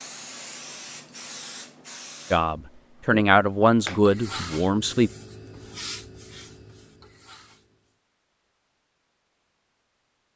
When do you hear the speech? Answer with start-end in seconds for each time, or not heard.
2.3-5.1.